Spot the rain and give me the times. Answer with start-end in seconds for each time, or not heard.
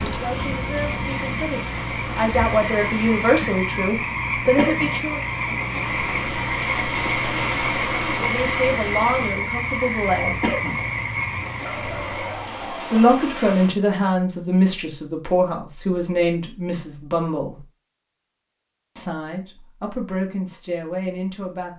0.0-13.7.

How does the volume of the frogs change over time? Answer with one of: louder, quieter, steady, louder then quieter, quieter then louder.
steady.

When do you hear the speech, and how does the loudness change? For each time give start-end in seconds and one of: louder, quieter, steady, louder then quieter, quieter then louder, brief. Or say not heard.
0.1-5.2 louder
8.2-10.3 brief
12.9-17.6 quieter
18.9-21.7 brief.